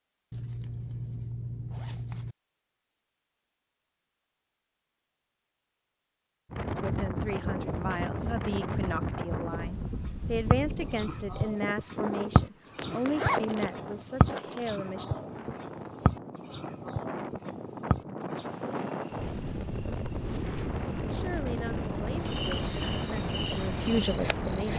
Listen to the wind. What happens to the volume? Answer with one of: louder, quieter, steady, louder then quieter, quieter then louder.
quieter then louder.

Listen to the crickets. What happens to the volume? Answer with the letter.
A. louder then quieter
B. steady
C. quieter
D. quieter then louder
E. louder
C.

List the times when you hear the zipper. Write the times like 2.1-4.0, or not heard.
0.3-2.4, 12.8-14.8.